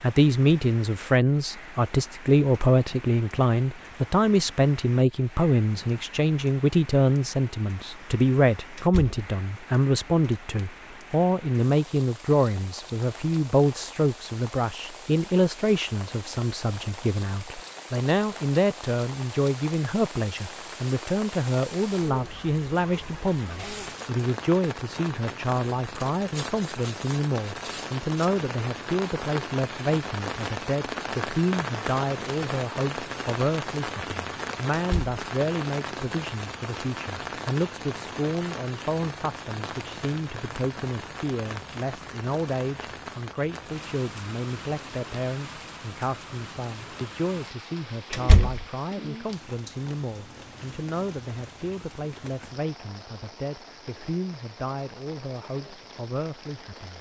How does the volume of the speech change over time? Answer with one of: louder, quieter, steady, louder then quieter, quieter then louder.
quieter.